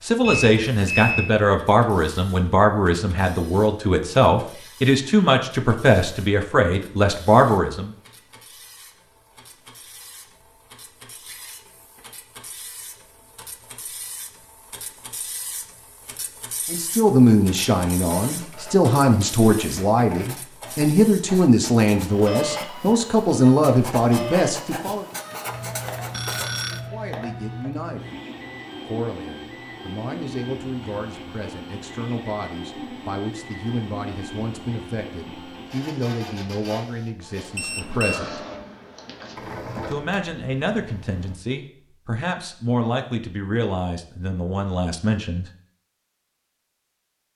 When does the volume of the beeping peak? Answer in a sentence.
The volume of the beeping peaks at 1 second.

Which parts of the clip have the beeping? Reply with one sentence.
You can hear the beeping from 0.2 to 1.4 s, from 26.1 to 26.8 s and from 37.5 to 38.2 s.